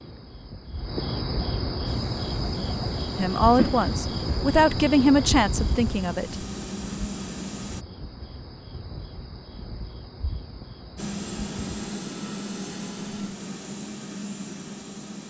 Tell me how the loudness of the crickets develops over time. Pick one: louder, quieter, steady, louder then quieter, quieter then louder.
quieter.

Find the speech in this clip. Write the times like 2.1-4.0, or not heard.
3.1-6.3.